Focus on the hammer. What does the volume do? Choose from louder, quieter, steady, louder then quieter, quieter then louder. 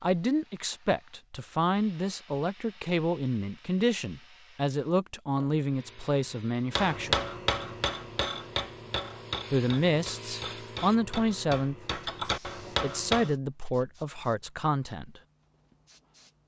quieter then louder.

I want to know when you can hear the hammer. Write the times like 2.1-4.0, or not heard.
6.7-13.3.